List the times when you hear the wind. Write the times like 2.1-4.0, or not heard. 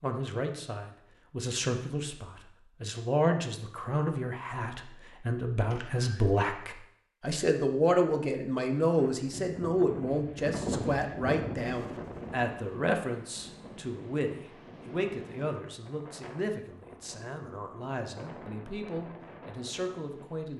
9.1-20.5.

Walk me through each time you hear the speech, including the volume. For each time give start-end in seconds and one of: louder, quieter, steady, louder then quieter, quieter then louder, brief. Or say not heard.
0.0-20.5 quieter.